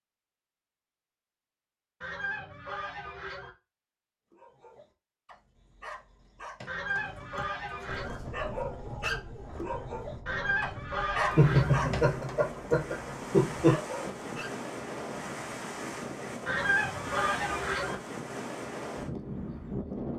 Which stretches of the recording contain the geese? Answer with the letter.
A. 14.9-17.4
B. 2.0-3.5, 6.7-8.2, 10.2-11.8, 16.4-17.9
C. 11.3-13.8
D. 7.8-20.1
B.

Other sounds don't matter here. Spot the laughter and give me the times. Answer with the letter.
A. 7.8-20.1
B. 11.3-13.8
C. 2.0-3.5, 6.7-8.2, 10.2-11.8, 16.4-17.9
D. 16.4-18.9
B.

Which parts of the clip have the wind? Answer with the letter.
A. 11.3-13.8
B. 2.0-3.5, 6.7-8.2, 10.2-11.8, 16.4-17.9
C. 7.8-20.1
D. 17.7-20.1
C.